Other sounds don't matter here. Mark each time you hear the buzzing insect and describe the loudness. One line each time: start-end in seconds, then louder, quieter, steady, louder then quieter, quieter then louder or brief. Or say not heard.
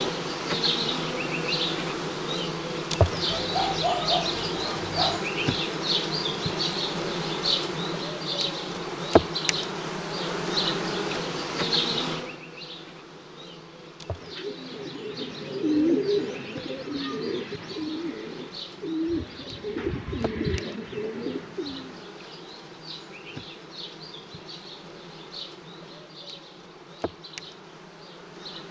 0.0-28.6 quieter.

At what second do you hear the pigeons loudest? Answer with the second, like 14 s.
16 s.